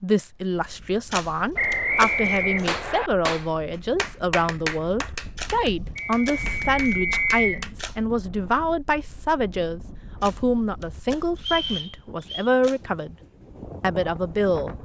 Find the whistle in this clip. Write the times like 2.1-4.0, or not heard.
1.6-3.1, 6.0-7.7, 11.3-12.5.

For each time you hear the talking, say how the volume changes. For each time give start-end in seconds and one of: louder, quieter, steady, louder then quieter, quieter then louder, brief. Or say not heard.
0.0-13.2 steady
13.8-14.8 brief.